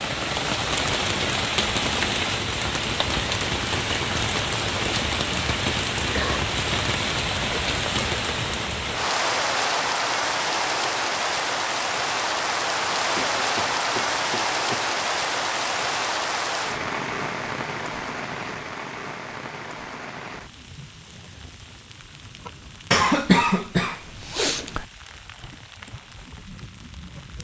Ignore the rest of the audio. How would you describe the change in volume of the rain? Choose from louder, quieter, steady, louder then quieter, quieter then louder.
quieter.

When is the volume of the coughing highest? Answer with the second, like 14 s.
23 s.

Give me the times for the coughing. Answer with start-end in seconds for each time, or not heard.
5.2-6.5, 13.2-14.8, 22.9-24.9.